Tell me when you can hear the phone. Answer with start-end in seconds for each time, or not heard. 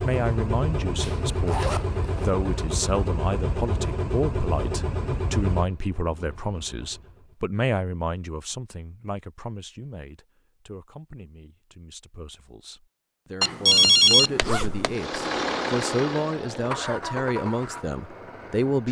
13.4-14.9.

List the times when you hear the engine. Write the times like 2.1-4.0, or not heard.
0.0-7.4, 14.8-18.8.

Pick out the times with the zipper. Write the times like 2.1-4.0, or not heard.
1.0-2.3, 14.4-14.8.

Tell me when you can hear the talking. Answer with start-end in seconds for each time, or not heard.
0.0-18.8.